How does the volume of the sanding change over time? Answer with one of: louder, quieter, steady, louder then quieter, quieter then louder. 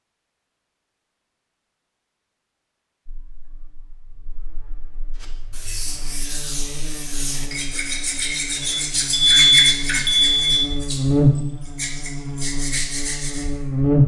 louder then quieter.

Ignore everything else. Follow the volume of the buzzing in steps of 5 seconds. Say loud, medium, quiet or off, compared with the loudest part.
quiet, quiet, loud.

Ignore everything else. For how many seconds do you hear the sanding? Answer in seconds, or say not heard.
8 s.